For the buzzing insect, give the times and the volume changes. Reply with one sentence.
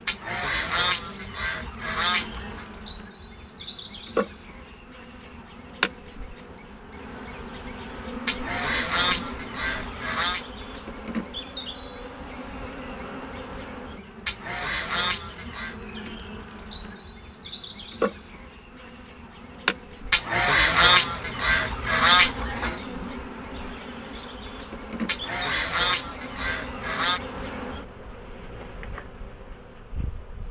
The buzzing insect can be heard from 0.0 to 30.4 s, at a steady volume.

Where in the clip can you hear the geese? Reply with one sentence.
You can hear the geese from 0.1 to 2.6 s, from 8.2 to 10.4 s, from 14.2 to 15.8 s, from 20.1 to 22.8 s and from 25.1 to 27.2 s.